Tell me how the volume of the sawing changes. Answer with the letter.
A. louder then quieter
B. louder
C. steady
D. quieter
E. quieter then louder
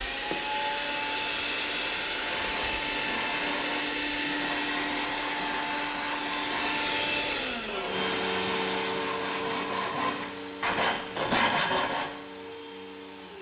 B.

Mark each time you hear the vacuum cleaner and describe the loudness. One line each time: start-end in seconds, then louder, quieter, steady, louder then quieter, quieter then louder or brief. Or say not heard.
0.0-13.3 quieter.